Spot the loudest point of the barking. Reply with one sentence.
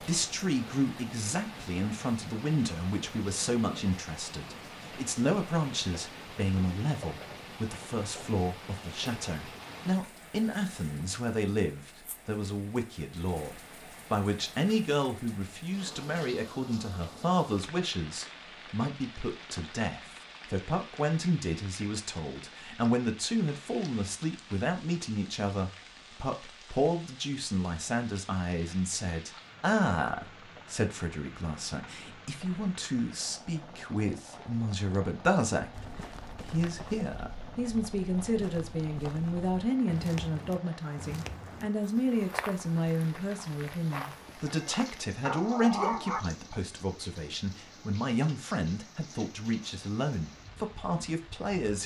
The volume of the barking peaks at 46 seconds.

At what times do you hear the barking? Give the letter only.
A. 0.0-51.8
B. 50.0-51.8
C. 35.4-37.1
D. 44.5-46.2
D.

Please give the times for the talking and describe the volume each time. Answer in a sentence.
You can hear the talking from 0.0 to 51.8 s, at a steady volume.